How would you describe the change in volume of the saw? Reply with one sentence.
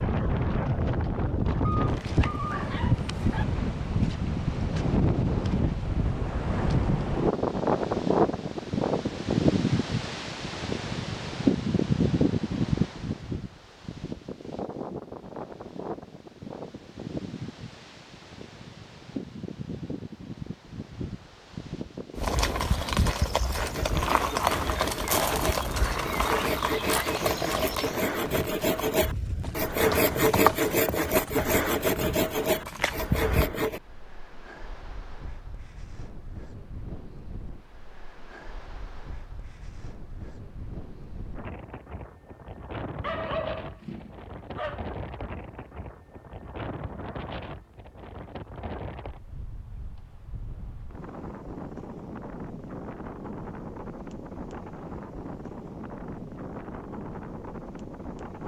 The volume of the saw goes up.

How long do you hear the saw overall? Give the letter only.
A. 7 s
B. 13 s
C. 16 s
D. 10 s
D.